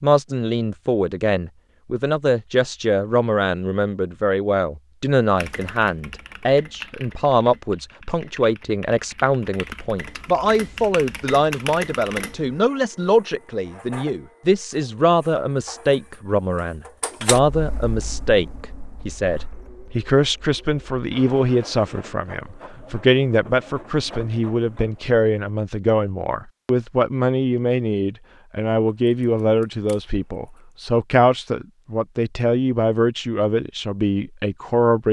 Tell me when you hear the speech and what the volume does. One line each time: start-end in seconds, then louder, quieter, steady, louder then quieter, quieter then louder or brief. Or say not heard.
0.0-35.0 steady.